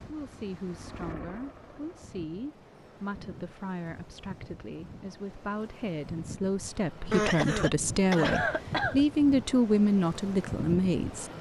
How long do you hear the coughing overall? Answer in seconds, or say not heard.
2 s.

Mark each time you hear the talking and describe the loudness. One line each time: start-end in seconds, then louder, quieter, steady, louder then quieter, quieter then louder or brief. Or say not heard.
0.1-11.3 louder.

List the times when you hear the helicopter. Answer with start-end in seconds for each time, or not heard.
0.0-2.2.